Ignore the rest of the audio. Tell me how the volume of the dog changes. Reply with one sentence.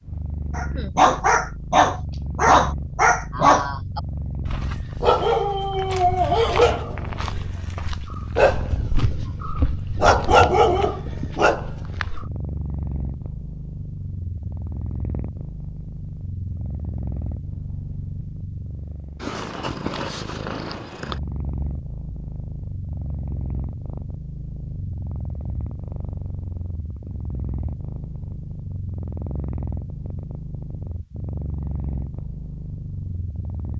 The volume of the dog goes down, then up.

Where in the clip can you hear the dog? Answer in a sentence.
You can hear the dog from 0.6 to 12.3 s.